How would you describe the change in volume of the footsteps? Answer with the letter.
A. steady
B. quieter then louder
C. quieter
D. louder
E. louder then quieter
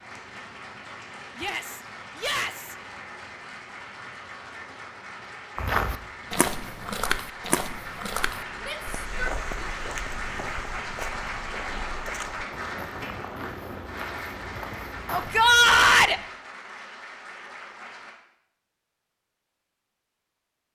C.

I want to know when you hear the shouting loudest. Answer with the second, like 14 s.
16 s.